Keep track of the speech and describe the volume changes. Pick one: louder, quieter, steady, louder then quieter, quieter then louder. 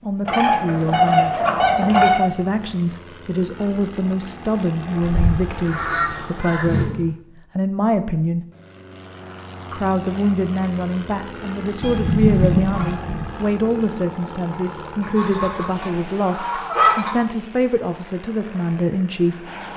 steady.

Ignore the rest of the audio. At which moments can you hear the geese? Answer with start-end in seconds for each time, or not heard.
0.2-2.2, 5.0-6.8, 11.8-13.3, 15.0-17.2.